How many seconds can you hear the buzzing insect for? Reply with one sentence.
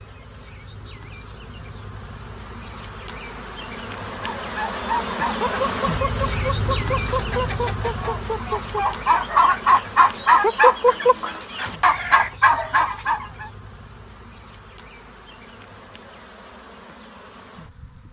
The buzzing insect can be heard for 18 seconds in total.